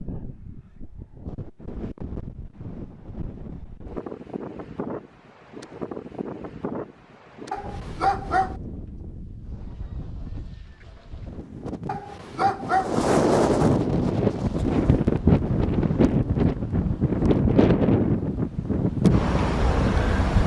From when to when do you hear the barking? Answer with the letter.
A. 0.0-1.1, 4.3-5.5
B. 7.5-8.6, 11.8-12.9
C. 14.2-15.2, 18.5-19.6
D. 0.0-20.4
B.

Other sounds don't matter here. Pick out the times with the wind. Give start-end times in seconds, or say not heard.
0.0-20.4.